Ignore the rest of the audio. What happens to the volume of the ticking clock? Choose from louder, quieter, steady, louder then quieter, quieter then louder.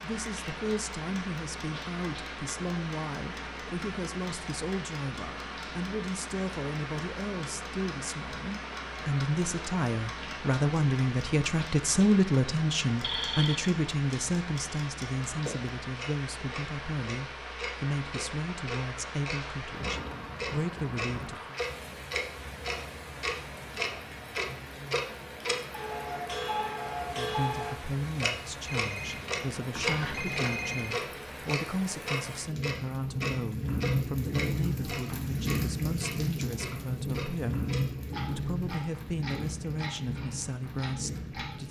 louder then quieter.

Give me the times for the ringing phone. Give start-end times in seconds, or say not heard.
13.0-13.7, 28.6-31.0.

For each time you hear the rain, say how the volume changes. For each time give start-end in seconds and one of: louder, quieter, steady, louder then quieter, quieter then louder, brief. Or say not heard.
0.0-41.6 louder.